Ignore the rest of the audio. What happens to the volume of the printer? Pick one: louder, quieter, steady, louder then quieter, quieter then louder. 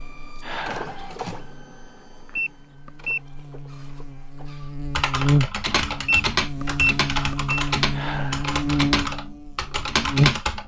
quieter.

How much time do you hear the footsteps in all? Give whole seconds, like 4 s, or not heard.
not heard.